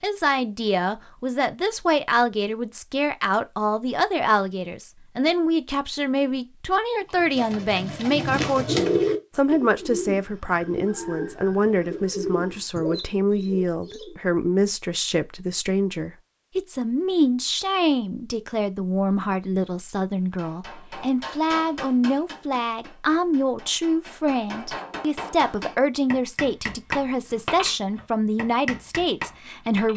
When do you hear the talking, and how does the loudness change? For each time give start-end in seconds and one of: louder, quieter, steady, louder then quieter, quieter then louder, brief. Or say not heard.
0.0-29.9 steady.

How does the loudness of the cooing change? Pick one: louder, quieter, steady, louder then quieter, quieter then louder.
louder then quieter.